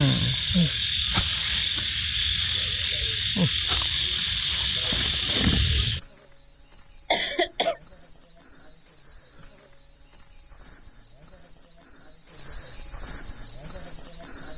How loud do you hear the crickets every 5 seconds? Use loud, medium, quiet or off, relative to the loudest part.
medium, medium, loud.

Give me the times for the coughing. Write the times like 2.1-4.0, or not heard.
7.1-7.8.